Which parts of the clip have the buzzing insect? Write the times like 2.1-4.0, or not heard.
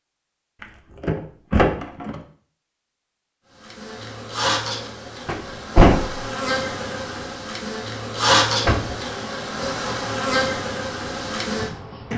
3.6-12.1.